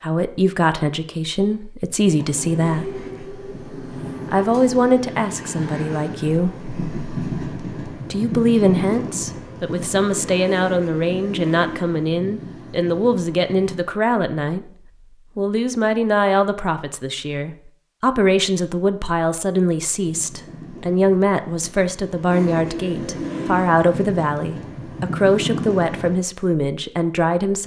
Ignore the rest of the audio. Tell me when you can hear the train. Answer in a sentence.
The train can be heard from 2.0 to 13.9 s and from 19.9 to 26.2 s.